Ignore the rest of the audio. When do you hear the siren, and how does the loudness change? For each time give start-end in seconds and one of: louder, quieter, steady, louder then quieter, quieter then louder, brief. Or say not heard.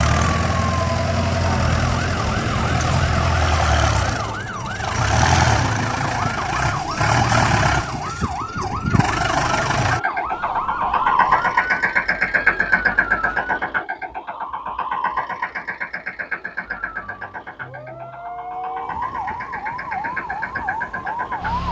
0.0-13.6 steady
16.6-21.6 louder.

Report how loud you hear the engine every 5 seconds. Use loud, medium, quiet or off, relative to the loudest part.
loud, loud, loud, medium, medium.